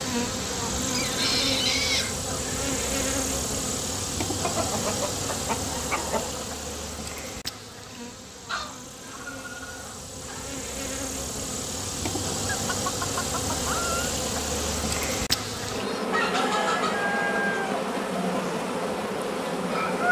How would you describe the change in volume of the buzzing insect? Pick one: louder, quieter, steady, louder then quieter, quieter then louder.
quieter then louder.